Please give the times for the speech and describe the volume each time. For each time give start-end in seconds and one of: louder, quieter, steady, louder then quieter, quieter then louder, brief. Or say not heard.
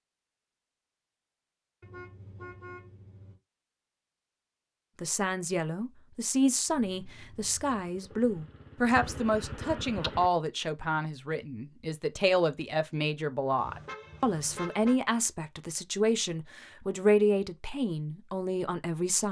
5.0-19.2 steady.